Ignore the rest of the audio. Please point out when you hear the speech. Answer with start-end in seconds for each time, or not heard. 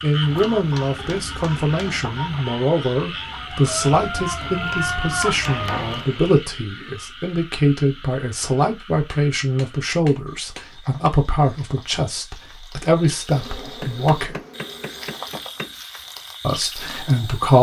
0.0-14.4, 16.4-17.5.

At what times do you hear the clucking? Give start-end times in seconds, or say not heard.
0.2-6.0.